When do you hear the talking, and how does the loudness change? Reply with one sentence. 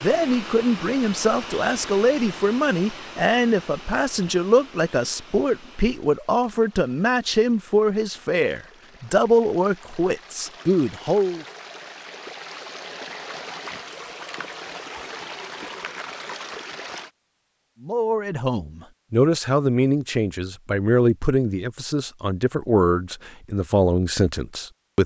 The talking can be heard from 0.0 to 11.4 s, at a steady volume; and from 17.8 to 25.0 s, at a steady volume.